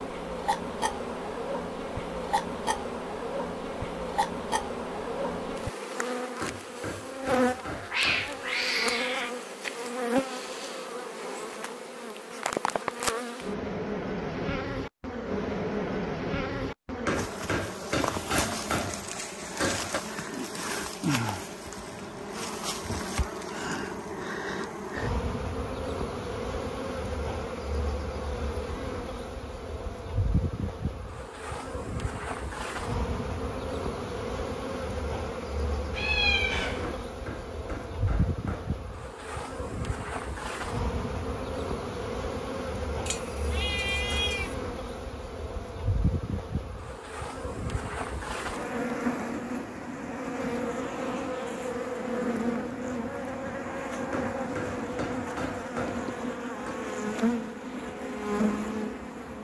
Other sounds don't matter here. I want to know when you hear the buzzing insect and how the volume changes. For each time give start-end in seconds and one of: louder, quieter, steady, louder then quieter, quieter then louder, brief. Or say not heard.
0.0-59.4 steady.